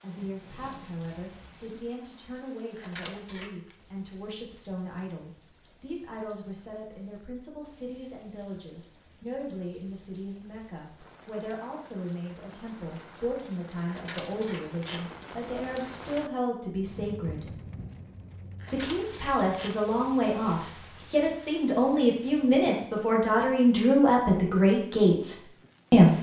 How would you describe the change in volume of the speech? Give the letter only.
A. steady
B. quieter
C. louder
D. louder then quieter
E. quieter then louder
C.